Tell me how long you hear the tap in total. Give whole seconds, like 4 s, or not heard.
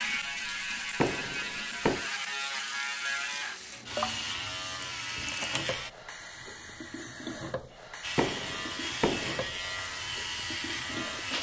11 s.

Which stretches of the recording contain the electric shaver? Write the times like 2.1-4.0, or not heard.
0.0-5.9, 8.0-11.3.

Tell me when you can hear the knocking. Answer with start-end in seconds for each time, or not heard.
1.0-2.1, 8.2-9.5.